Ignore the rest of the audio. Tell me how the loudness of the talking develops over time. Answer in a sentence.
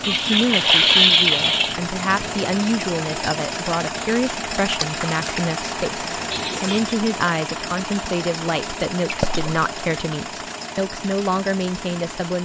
The loudness of the talking stays about the same.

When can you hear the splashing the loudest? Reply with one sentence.
The volume of the splashing peaks at 1 second.